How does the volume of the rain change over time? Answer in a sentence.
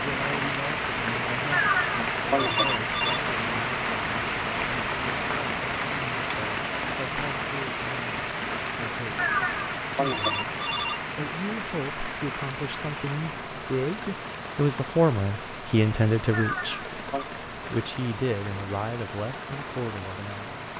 The volume of the rain goes down.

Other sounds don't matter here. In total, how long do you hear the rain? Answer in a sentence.
You can hear the rain for 21 seconds altogether.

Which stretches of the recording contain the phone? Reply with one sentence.
You can hear the phone from 1.5 to 3.2 s, from 9.2 to 11.0 s and from 16.3 to 17.2 s.